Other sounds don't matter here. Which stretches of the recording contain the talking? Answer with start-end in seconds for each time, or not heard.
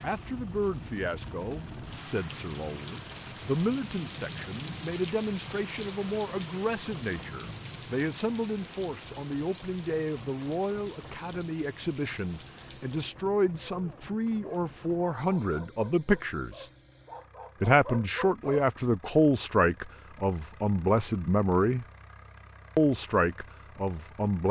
0.0-16.6, 17.6-21.9, 22.8-24.4.